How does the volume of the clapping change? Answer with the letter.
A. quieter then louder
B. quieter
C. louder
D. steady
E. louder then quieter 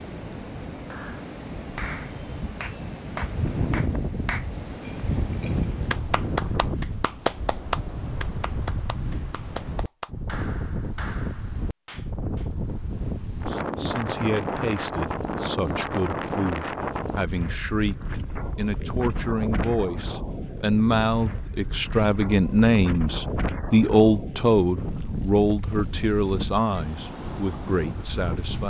E.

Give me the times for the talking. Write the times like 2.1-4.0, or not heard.
13.2-28.6.